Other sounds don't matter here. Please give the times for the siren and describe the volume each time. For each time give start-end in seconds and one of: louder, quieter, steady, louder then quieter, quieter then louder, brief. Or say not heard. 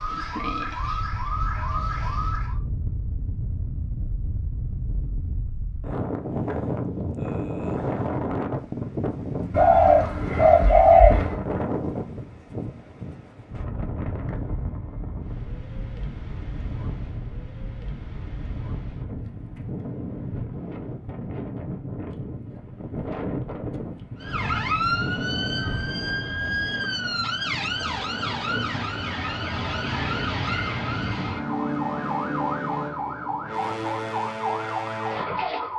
0.0-2.6 brief
24.2-35.7 steady.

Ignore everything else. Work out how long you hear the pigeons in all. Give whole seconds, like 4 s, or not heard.
2 s.